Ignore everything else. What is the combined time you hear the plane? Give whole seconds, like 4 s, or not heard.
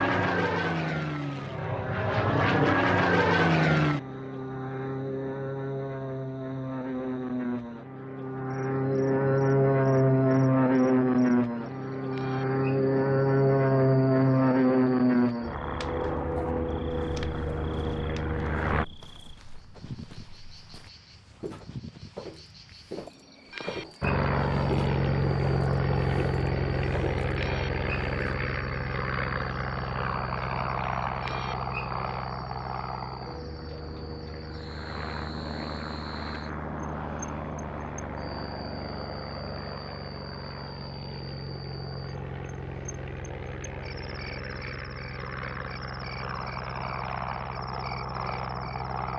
44 s.